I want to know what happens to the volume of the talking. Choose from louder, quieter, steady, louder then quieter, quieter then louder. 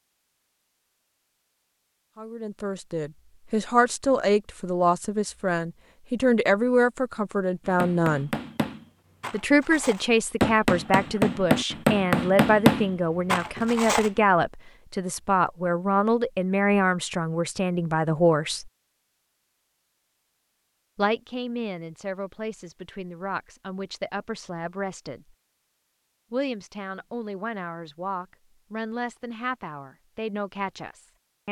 quieter.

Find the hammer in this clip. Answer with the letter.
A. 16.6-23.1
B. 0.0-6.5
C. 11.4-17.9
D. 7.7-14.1
D.